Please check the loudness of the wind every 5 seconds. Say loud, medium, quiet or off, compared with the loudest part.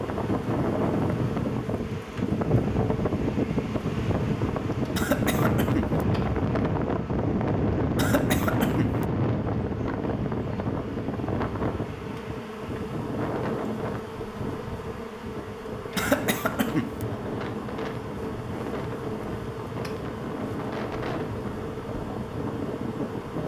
loud, loud, medium, medium, medium.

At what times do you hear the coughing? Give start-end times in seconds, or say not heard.
5.0-6.0, 8.0-9.1, 15.9-17.1.